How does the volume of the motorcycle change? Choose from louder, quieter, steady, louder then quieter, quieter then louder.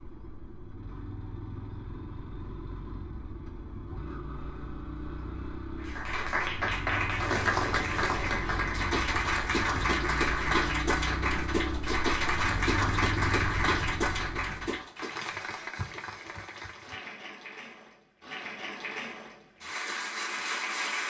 louder.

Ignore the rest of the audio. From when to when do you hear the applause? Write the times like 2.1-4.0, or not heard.
5.8-21.0.